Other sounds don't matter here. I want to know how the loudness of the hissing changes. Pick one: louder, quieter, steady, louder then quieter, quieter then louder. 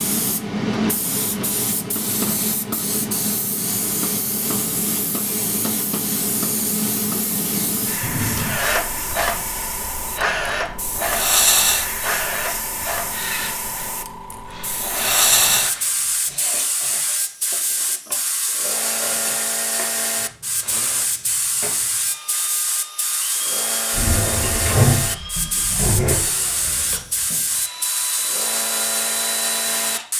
steady.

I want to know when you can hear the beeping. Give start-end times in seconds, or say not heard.
not heard.